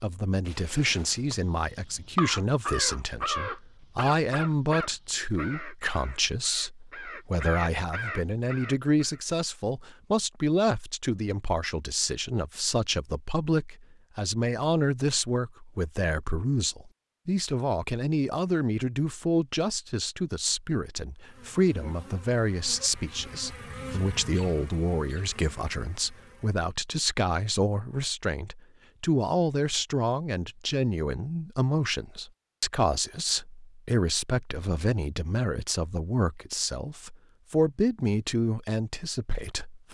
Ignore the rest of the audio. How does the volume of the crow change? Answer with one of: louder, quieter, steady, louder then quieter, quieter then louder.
quieter then louder.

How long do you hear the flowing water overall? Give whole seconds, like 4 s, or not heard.
not heard.